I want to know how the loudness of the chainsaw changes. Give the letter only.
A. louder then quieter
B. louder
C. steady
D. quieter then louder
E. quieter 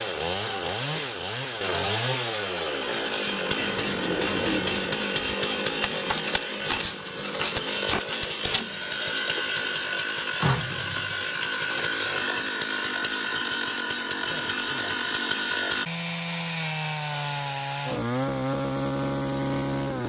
C.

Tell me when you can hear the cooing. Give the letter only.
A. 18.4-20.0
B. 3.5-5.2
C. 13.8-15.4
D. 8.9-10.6
B.